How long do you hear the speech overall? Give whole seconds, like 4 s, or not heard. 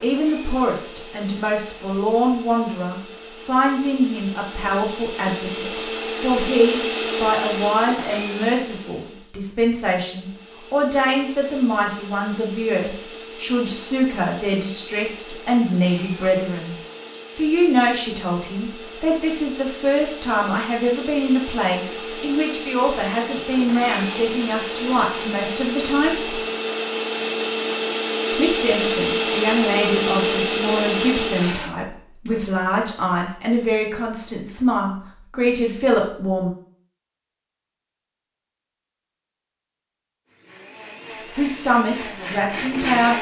36 s.